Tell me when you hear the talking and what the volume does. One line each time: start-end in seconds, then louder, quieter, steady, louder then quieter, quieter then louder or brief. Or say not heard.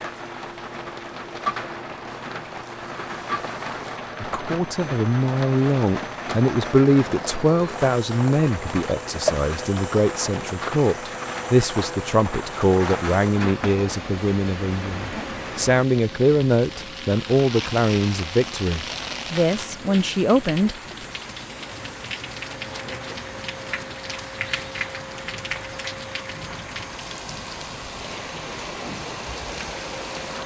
4.2-20.8 steady.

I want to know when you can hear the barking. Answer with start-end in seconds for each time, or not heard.
not heard.